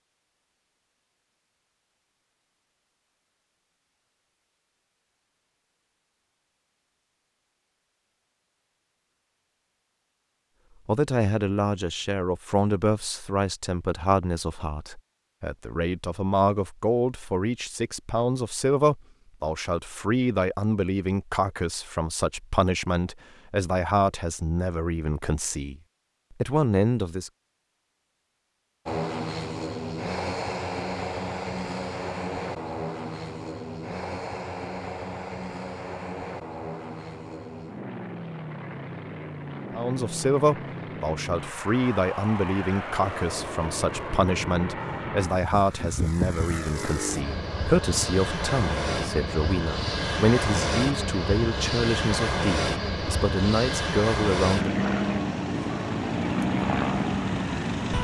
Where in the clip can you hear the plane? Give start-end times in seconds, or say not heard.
28.9-57.9.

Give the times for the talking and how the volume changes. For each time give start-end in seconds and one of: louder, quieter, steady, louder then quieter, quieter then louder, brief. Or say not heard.
10.8-25.8 steady
26.4-27.3 brief
39.7-54.9 steady.